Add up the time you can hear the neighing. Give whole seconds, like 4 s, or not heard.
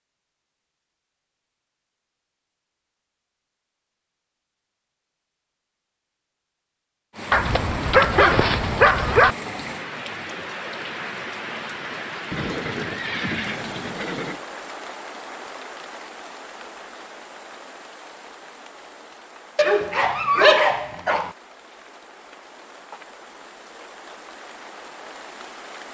2 s.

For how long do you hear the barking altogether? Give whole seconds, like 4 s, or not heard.
4 s.